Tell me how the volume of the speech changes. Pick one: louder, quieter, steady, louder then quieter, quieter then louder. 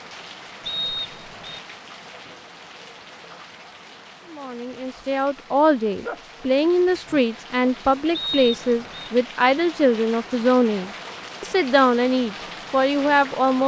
steady.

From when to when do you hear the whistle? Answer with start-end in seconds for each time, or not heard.
0.7-1.6, 8.1-9.1.